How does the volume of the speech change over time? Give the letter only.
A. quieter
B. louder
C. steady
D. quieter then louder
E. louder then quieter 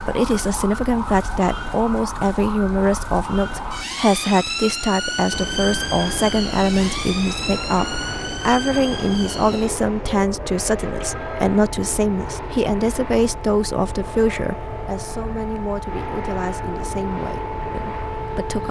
A.